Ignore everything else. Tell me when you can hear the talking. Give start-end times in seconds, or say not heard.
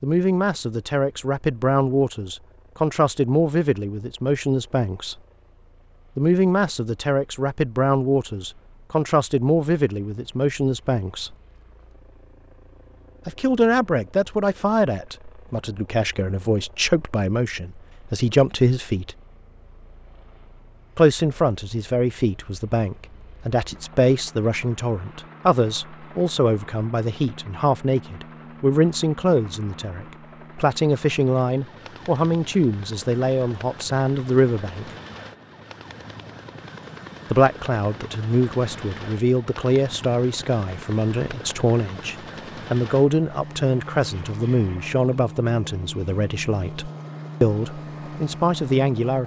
0.0-5.2, 6.2-11.3, 13.2-19.1, 20.9-34.9, 37.3-49.2.